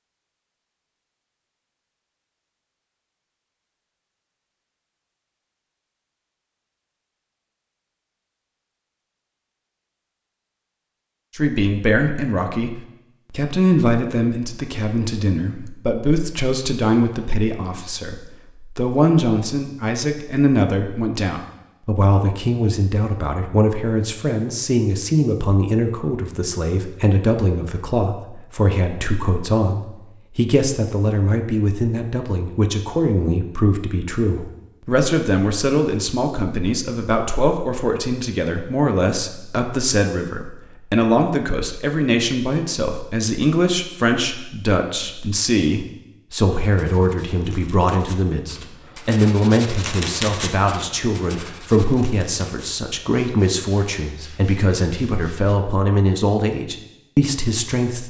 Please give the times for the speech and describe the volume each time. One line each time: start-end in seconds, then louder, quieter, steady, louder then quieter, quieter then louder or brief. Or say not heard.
11.3-58.0 steady.